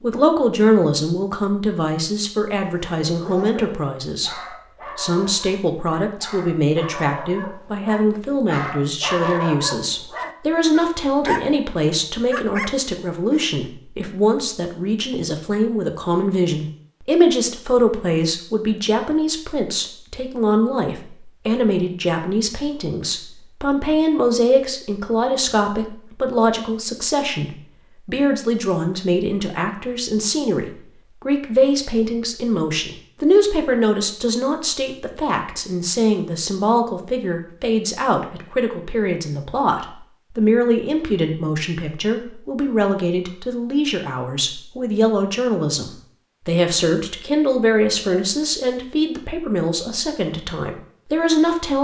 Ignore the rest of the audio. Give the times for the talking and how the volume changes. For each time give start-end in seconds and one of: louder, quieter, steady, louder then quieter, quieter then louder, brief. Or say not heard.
0.0-51.7 steady.